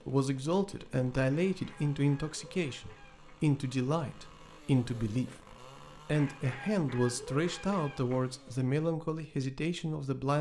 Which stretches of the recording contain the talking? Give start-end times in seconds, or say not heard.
0.1-5.4, 6.0-10.3.